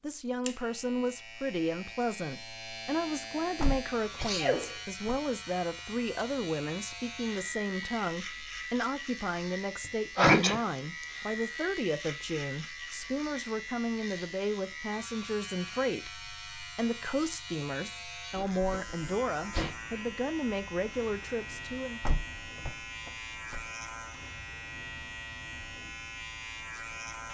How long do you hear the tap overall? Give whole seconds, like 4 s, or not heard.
not heard.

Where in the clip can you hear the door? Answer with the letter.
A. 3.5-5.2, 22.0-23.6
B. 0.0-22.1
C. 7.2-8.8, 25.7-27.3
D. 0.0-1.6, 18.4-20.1
A.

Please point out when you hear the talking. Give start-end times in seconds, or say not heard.
0.0-22.1.